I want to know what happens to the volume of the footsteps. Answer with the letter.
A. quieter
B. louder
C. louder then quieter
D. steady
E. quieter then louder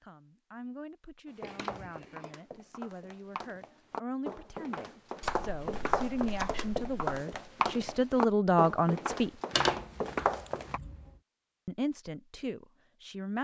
B.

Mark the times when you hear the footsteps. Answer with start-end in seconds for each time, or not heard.
1.4-10.8.